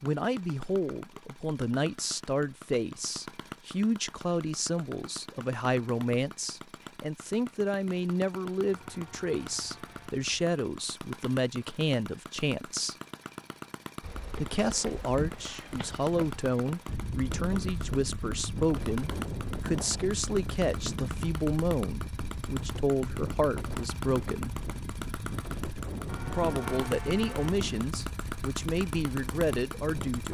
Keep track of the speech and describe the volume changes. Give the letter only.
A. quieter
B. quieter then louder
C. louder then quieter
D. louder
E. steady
E.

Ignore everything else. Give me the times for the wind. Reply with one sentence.
The wind can be heard from 14.0 to 30.2 s.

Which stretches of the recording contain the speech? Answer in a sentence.
You can hear the speech from 0.0 to 12.9 s, from 14.4 to 24.6 s and from 26.2 to 30.2 s.